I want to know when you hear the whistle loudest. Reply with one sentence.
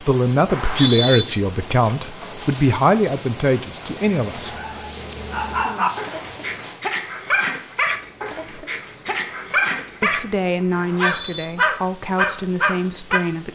The loudest moment of the whistle is at 1 second.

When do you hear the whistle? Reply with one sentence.
The whistle can be heard from 0.5 to 1.2 s and from 10.7 to 11.4 s.